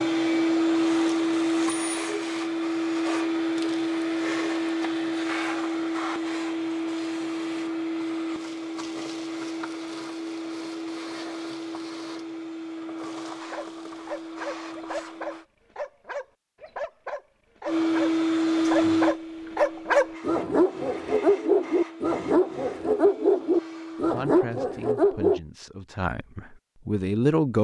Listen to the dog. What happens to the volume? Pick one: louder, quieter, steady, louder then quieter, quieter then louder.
louder.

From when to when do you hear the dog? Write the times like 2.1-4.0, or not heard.
13.5-25.4.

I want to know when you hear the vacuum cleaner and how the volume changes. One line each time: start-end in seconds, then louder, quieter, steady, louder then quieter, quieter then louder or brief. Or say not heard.
0.0-15.4 quieter
17.6-24.2 quieter.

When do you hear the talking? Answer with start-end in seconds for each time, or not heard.
24.0-27.5.